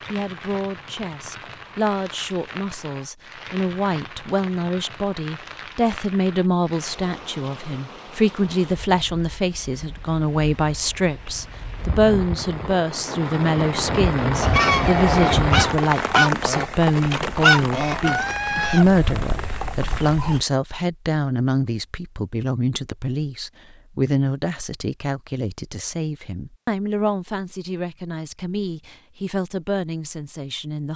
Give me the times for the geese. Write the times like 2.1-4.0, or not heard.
14.4-20.4.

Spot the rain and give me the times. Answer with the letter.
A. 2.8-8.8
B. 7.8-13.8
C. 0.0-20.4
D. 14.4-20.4
C.